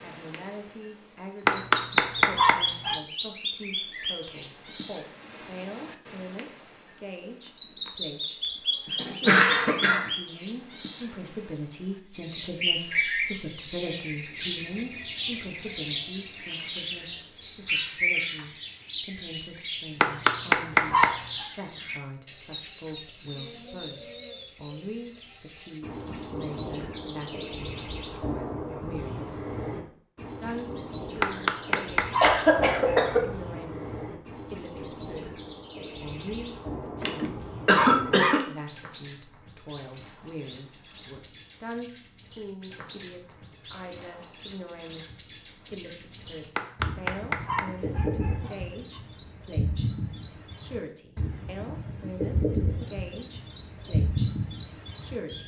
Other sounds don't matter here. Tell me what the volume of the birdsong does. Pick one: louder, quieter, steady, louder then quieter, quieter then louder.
quieter then louder.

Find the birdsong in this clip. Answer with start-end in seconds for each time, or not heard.
0.0-55.4.